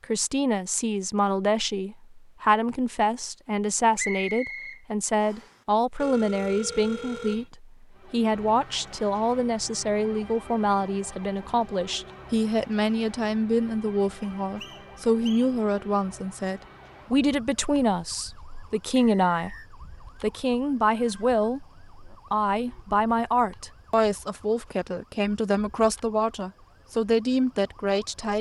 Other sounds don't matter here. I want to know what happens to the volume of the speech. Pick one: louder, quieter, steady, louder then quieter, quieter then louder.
steady.